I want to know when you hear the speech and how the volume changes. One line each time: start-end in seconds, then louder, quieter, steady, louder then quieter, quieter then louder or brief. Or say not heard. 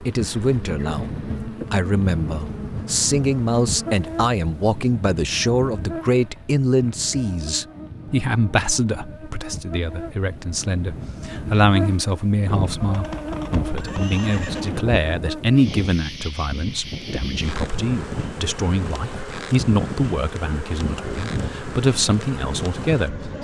0.0-23.3 steady.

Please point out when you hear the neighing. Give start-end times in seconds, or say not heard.
12.8-14.8.